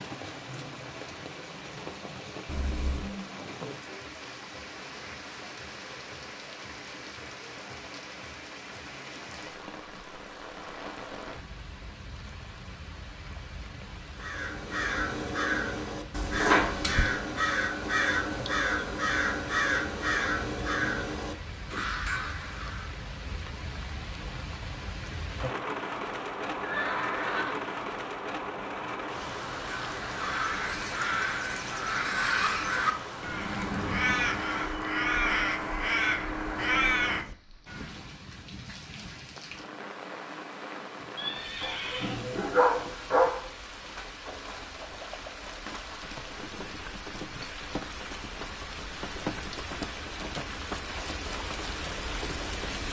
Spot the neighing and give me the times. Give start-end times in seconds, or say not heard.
2.5-3.0, 26.6-27.6, 41.1-42.2.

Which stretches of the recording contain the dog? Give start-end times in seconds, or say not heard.
41.6-43.5.